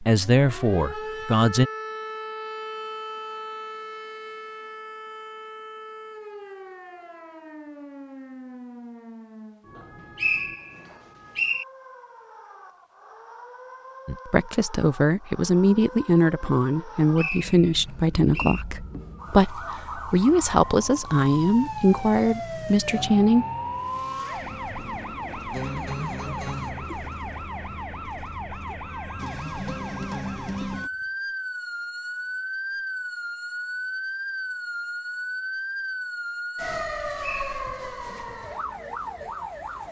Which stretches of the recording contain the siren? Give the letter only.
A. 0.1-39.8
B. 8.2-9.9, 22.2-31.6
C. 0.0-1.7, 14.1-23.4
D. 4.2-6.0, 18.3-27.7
A.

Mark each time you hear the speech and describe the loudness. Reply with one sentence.
You can hear the speech briefly from 0.0 to 1.7 s; and from 14.1 to 23.4 s, at a steady volume.